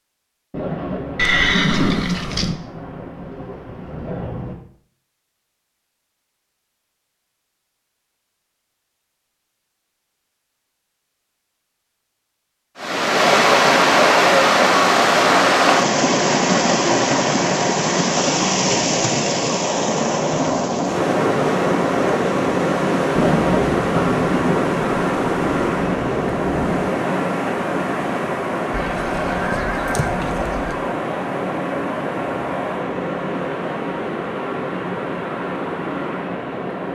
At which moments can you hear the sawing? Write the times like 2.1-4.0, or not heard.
not heard.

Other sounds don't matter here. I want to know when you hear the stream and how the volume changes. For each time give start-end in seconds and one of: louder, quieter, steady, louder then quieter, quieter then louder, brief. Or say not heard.
12.8-36.8 quieter.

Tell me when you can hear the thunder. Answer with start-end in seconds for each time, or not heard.
0.5-4.5, 23.1-26.9.